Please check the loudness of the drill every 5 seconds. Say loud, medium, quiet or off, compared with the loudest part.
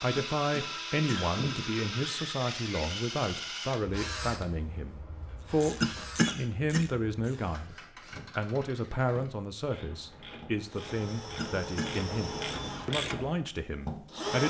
loud, medium, loud.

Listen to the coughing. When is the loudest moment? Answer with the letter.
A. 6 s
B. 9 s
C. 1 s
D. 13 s
A.